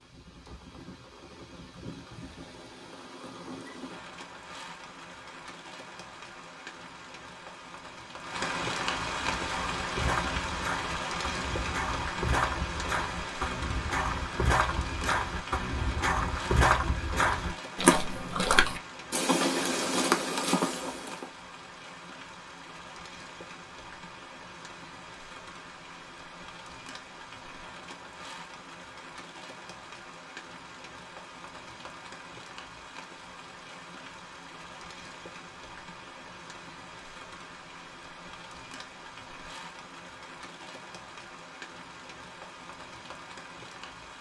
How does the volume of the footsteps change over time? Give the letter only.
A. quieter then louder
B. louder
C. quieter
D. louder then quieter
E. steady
B.